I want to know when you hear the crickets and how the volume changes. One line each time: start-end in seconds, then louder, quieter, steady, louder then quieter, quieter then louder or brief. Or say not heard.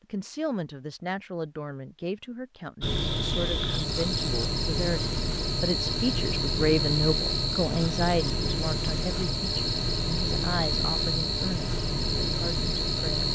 2.8-13.3 steady.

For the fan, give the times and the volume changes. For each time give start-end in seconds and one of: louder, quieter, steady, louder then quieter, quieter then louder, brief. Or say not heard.
2.8-13.3 steady.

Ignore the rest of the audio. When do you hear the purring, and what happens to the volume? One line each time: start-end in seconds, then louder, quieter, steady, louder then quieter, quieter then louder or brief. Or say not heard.
not heard.